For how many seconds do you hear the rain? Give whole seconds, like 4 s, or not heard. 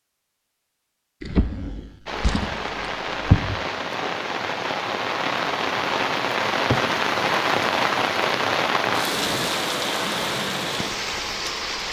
10 s.